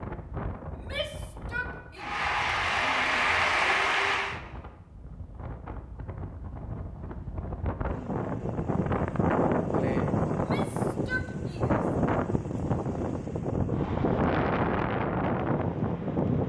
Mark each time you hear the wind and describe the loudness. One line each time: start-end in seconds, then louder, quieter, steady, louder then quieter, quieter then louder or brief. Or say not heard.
0.0-16.4 louder.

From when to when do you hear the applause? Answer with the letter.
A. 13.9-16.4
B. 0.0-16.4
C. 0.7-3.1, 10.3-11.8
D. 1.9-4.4
D.